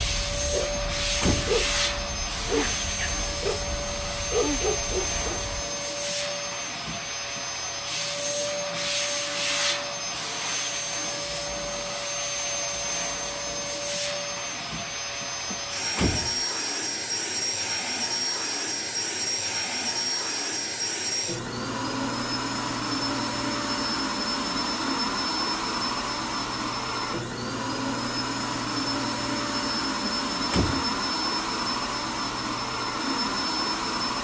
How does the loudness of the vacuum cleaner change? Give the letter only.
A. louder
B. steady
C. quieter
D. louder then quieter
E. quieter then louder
B.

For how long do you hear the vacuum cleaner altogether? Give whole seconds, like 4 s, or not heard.
34 s.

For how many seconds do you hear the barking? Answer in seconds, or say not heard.
6 s.